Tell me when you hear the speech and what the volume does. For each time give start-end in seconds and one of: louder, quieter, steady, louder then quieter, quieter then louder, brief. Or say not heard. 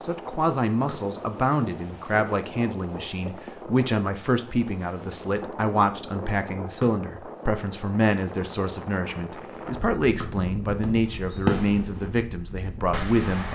0.0-13.5 steady.